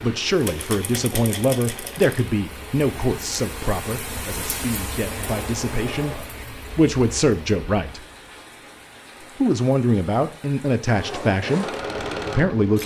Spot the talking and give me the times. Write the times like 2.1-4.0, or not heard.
0.0-8.0, 9.2-12.8.